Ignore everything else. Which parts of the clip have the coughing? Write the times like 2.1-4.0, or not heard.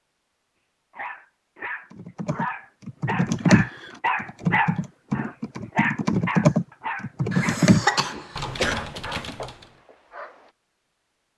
7.3-8.8.